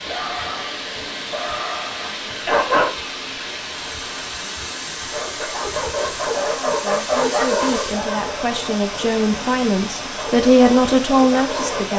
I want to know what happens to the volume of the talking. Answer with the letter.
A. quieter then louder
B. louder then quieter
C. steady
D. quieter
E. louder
E.